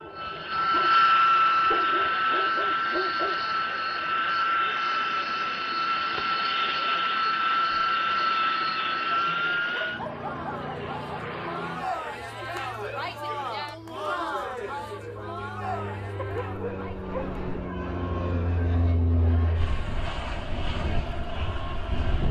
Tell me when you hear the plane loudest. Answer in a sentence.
The loudest moment of the plane is at 1 second.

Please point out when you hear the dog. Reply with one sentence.
You can hear the dog from 0.6 to 3.5 s, from 9.7 to 10.9 s and from 16.1 to 17.7 s.